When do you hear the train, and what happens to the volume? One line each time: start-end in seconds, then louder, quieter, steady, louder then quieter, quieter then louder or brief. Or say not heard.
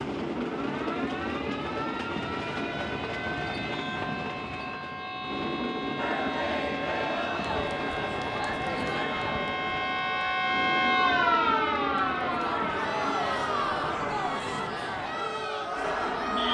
0.0-16.4 quieter.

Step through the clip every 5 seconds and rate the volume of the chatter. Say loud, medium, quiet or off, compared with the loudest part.
off, loud, loud, loud.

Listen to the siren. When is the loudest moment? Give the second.
11 s.